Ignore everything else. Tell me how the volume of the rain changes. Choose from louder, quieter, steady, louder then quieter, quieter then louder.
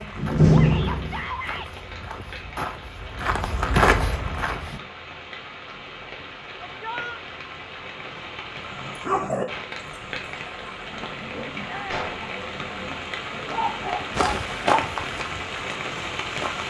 louder.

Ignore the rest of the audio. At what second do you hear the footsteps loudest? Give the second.
4 s.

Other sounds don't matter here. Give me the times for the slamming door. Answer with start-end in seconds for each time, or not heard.
0.1-1.2, 11.8-12.3.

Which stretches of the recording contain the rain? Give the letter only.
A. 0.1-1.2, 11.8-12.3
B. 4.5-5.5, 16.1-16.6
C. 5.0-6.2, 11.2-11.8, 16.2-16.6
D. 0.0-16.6
D.